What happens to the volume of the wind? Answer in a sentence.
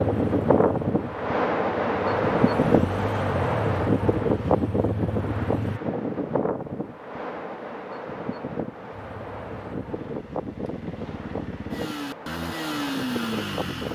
The loudness of the wind goes down.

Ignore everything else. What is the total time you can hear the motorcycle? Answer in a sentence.
You can hear the motorcycle for 11 seconds altogether.